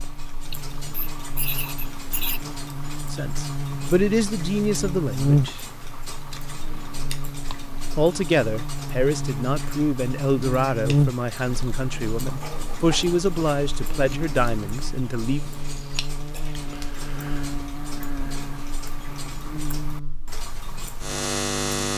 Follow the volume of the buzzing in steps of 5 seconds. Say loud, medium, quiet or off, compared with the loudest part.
medium, loud, loud, medium, loud.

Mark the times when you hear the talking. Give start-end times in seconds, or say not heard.
3.1-5.7, 8.0-15.4.